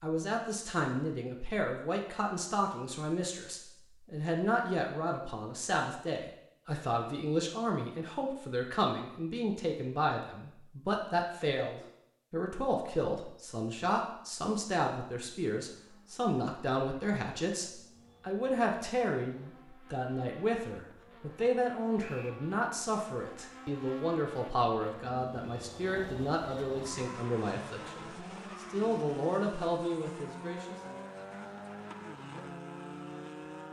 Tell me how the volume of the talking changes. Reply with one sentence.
The loudness of the talking stays about the same.